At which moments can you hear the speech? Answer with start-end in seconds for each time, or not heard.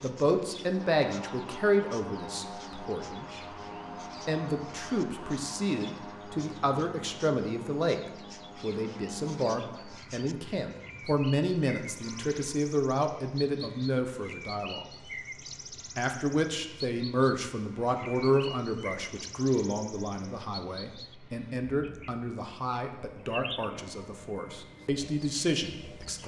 0.0-3.5, 4.2-8.0, 8.6-14.9, 15.9-26.2.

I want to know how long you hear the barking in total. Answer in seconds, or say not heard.
not heard.